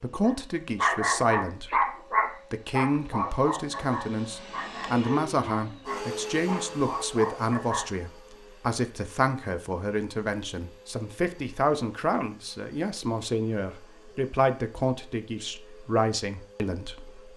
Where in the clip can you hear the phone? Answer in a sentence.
The phone can't be heard in this clip.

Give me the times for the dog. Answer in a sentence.
The dog can be heard from 0.2 to 7.9 s.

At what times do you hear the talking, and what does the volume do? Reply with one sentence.
You can hear the talking briefly from 0.0 to 1.8 s; and from 2.5 to 17.2 s, at a steady volume.